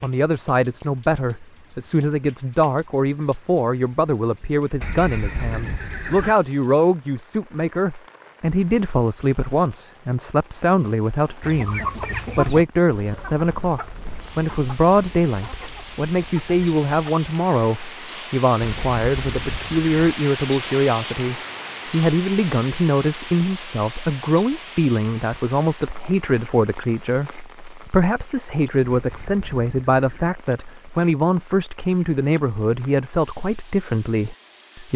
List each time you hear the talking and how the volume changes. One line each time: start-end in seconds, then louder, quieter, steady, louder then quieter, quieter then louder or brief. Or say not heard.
0.0-34.9 steady.